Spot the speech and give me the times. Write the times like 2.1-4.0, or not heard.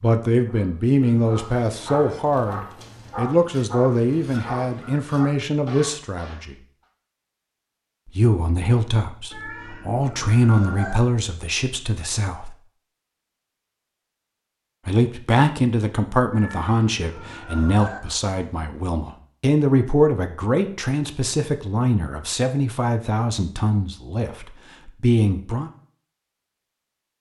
0.0-6.5, 8.1-12.6, 14.8-25.7.